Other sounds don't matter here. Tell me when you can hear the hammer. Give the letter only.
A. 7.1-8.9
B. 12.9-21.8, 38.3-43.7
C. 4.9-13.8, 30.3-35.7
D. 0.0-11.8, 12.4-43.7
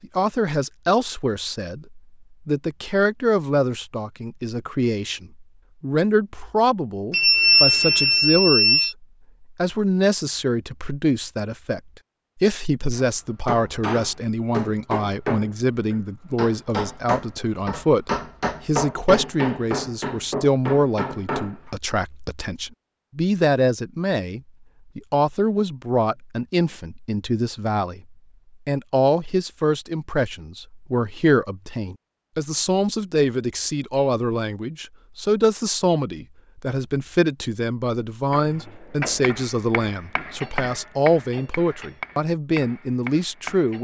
B.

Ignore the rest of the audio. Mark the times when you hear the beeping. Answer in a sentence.
The beeping can be heard from 7.1 to 8.9 s.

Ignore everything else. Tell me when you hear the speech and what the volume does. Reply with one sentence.
The speech can be heard from 0.0 to 11.8 s, at a steady volume; and from 12.4 to 43.7 s, at a steady volume.